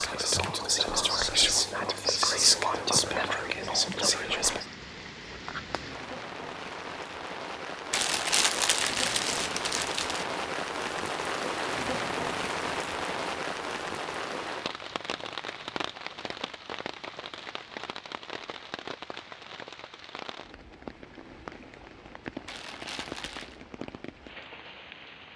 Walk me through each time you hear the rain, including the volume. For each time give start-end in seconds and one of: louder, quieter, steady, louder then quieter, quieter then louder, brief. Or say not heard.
0.0-25.3 louder then quieter.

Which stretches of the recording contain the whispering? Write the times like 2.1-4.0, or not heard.
0.0-4.7.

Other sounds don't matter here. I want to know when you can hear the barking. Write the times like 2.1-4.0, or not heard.
not heard.